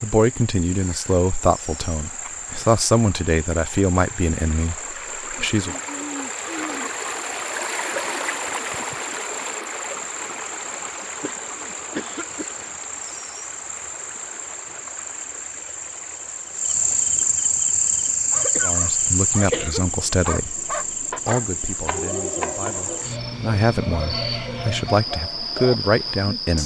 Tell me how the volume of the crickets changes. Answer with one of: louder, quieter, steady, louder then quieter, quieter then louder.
louder then quieter.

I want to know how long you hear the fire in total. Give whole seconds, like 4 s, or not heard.
not heard.